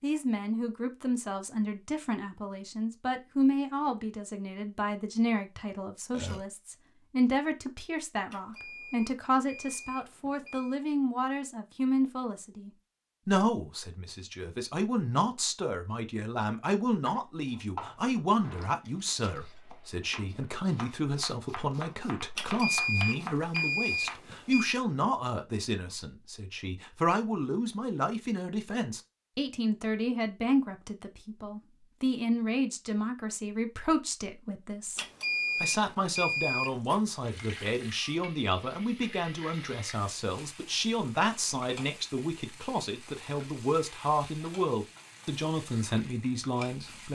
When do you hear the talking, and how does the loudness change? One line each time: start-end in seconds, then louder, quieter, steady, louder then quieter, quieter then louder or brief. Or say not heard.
0.0-47.1 steady.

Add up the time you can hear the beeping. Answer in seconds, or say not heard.
7 s.